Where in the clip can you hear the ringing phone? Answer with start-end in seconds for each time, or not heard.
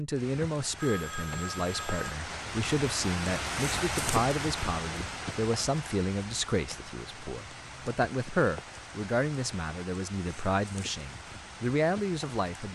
0.8-2.1.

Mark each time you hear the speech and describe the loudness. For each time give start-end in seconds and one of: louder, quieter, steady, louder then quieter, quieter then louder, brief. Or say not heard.
0.0-12.6 steady.